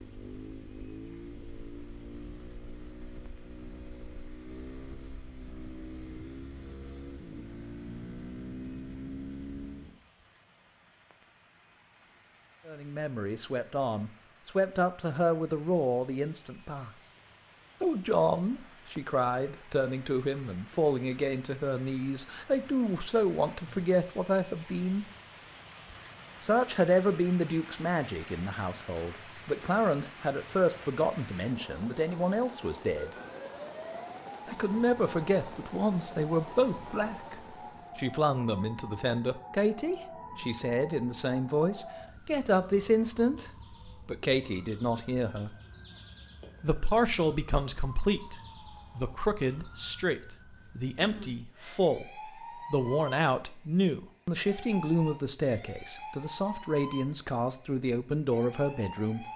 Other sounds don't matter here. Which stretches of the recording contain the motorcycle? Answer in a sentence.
You can hear the motorcycle from 0.0 to 10.1 s.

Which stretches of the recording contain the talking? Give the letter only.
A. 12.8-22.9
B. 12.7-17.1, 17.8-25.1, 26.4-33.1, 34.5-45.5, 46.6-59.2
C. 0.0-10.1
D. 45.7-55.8
B.